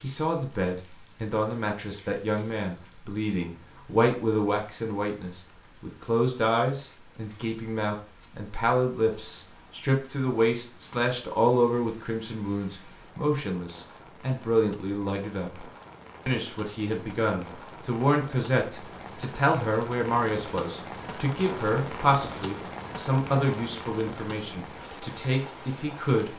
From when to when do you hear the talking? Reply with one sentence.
The talking can be heard from 0.0 to 15.7 s and from 16.2 to 26.3 s.